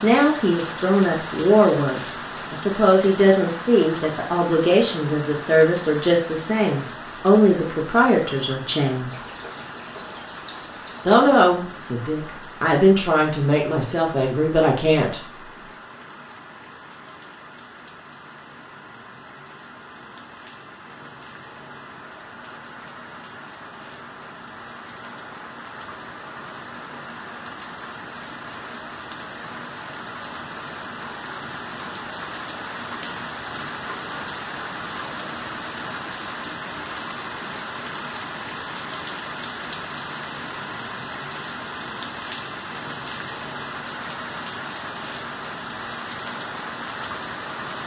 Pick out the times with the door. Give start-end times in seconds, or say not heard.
not heard.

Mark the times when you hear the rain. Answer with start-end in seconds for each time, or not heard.
0.0-47.8.